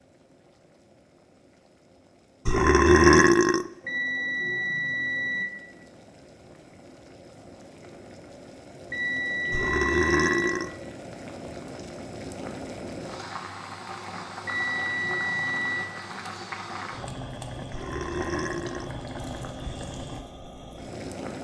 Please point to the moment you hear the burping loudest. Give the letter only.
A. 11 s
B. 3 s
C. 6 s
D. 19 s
B.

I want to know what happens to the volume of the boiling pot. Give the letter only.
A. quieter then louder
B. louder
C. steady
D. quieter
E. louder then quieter
B.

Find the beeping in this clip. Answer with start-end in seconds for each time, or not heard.
3.9-5.5, 8.9-10.5, 14.4-15.9.